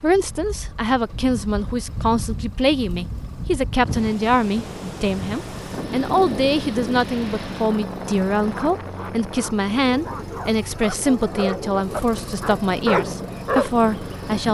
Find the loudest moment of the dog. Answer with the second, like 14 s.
13 s.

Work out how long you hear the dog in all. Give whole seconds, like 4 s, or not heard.
6 s.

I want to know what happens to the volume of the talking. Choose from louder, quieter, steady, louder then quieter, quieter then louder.
steady.